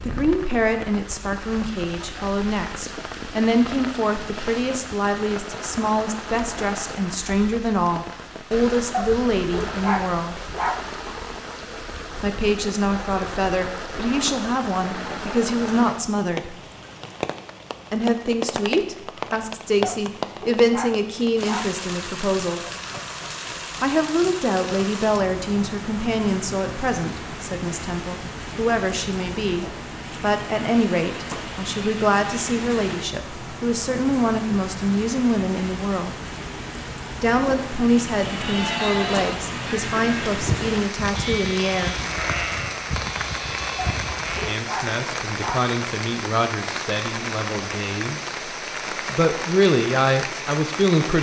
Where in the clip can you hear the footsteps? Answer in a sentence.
The footsteps can't be heard in this clip.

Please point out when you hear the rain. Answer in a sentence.
You can hear the rain from 0.0 to 51.1 s.